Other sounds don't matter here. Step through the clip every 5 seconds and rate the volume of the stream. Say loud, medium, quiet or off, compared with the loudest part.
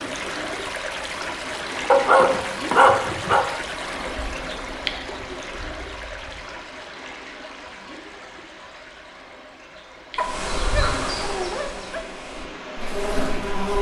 loud, medium, medium.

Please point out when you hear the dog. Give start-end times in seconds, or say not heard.
1.9-3.5, 10.2-12.1.